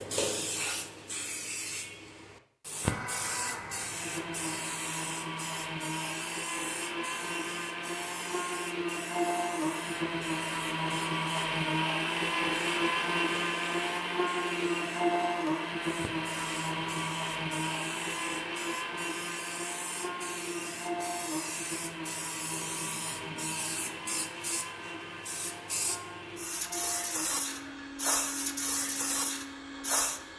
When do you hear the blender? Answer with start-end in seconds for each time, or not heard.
2.8-30.3.